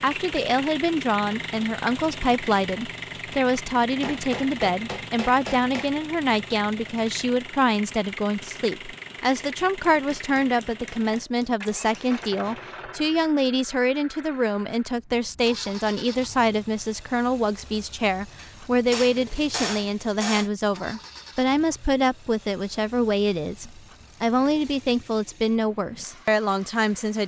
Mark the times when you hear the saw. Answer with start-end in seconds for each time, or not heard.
not heard.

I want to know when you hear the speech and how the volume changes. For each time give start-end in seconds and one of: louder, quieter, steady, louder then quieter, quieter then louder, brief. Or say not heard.
0.0-27.2 steady.